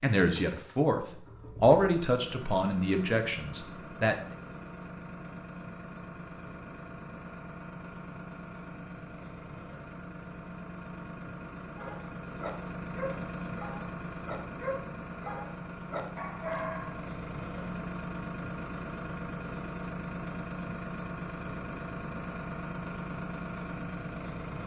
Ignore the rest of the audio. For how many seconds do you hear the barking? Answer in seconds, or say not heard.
5 s.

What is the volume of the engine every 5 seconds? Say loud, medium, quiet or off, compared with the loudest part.
medium, medium, loud, loud, loud.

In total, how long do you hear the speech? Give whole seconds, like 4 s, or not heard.
4 s.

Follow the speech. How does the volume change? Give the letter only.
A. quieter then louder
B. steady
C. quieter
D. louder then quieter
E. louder
D.